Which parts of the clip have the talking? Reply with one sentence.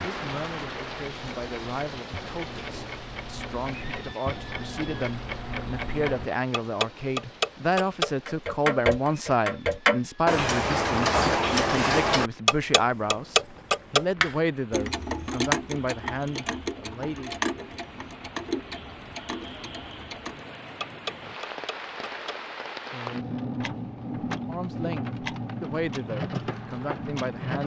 The talking can be heard from 0.0 to 17.4 s and from 24.4 to 27.6 s.